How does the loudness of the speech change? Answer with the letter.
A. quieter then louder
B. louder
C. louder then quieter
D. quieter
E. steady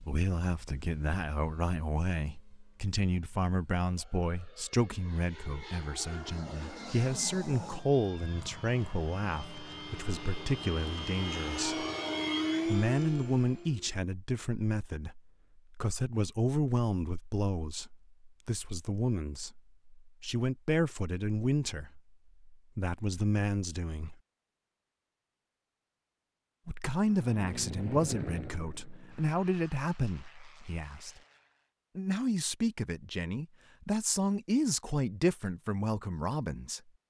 E.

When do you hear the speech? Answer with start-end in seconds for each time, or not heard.
0.1-11.8, 12.7-24.1, 26.6-31.2, 31.9-36.8.